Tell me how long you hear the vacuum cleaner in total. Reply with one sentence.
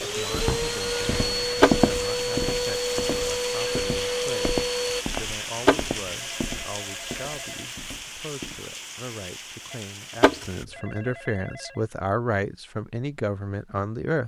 The vacuum cleaner can be heard for 5 seconds in total.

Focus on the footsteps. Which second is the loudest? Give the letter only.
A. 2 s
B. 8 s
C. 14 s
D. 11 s
A.